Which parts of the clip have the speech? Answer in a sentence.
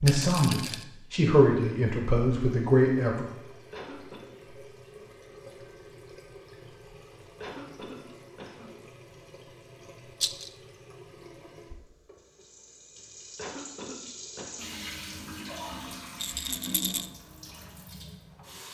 You can hear the speech from 0.0 to 3.2 s.